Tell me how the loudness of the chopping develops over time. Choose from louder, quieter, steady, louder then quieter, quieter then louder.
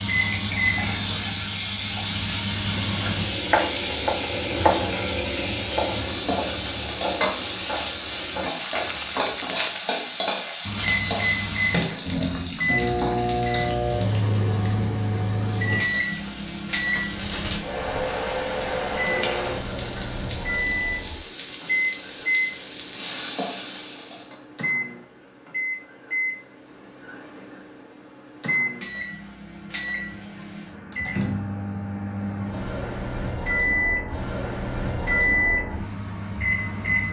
quieter.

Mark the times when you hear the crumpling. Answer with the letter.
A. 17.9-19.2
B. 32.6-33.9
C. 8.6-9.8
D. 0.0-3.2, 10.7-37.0
C.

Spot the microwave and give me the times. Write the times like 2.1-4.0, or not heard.
0.0-3.2, 10.7-37.0.